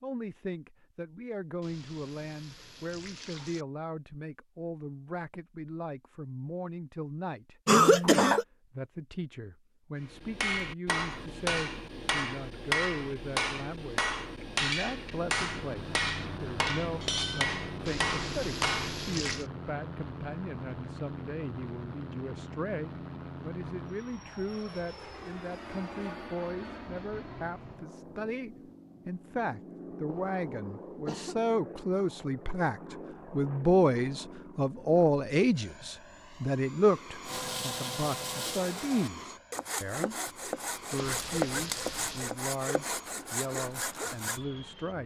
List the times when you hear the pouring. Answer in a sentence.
You can hear the pouring from 1.6 to 3.6 s, from 17.9 to 19.4 s and from 41.0 to 42.4 s.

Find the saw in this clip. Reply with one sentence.
The saw can be heard from 37.2 to 44.4 s.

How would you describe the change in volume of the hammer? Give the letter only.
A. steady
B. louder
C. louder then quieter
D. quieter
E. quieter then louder
A.